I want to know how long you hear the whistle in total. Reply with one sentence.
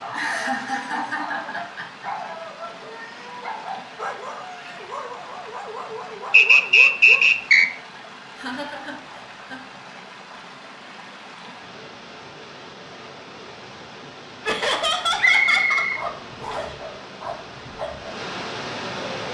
You can hear the whistle for 3 seconds altogether.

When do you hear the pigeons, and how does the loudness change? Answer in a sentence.
The pigeons can't be heard in this clip.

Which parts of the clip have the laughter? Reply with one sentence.
The laughter can be heard from 0.1 to 2.0 s, from 8.3 to 9.6 s and from 14.4 to 16.8 s.